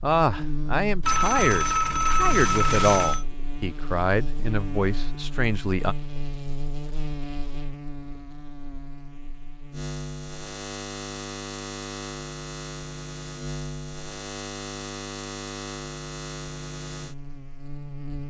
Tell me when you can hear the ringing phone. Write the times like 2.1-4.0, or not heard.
1.0-3.2.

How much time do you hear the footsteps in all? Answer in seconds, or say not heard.
not heard.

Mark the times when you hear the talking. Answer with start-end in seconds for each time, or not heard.
0.0-6.0.